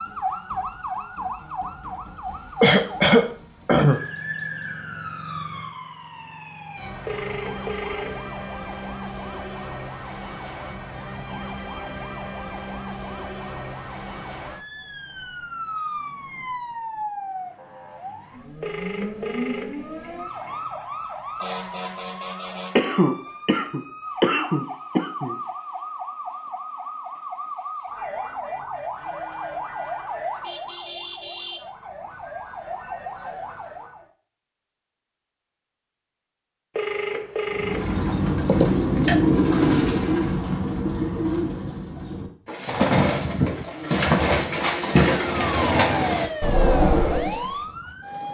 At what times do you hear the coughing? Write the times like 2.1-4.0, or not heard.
2.6-4.0, 22.8-25.4, 38.5-39.1.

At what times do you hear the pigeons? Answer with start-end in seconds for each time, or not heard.
37.5-47.5.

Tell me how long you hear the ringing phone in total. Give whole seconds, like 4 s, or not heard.
4 s.